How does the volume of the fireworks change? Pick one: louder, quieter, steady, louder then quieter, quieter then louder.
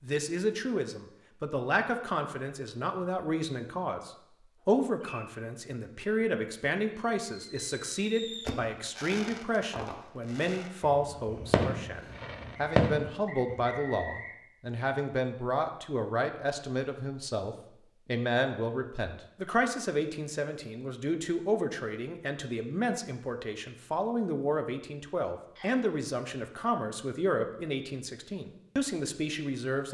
quieter then louder.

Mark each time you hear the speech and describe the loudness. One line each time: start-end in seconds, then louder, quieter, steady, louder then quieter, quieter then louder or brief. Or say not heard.
0.0-29.8 steady.